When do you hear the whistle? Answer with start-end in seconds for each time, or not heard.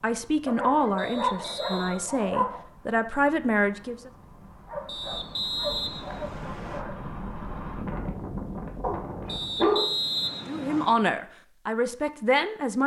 0.9-2.0, 4.8-6.8, 9.2-10.9.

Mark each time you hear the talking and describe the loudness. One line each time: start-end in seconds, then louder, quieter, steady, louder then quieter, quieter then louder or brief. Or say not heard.
0.0-4.1 quieter then louder
10.4-12.8 brief.